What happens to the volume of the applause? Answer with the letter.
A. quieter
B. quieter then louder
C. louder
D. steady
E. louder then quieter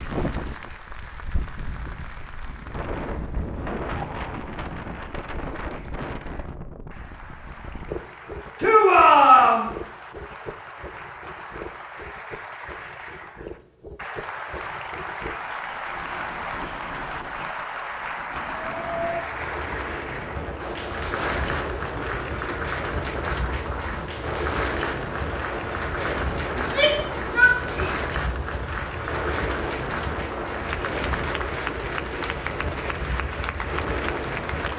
C.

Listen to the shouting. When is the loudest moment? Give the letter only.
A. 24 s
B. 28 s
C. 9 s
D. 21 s
C.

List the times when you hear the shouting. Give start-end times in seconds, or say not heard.
8.6-9.7, 26.6-27.9.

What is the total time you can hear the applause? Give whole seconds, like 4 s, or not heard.
35 s.